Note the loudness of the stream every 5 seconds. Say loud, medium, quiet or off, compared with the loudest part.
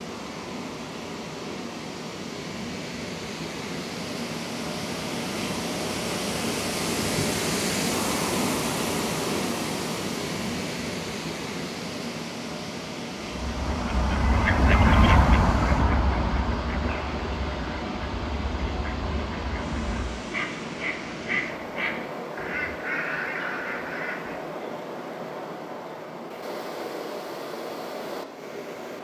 medium, loud, medium, medium, medium, medium.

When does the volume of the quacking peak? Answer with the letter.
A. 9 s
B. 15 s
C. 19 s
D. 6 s
B.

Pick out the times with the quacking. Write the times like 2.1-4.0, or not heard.
13.2-24.8.